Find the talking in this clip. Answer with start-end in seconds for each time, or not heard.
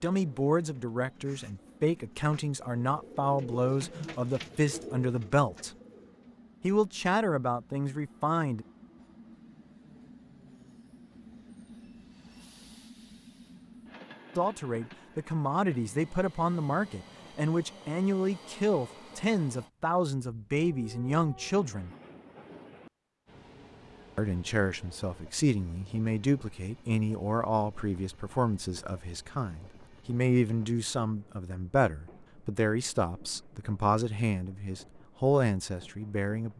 0.0-5.7, 6.6-8.7, 14.3-21.9, 24.1-36.5.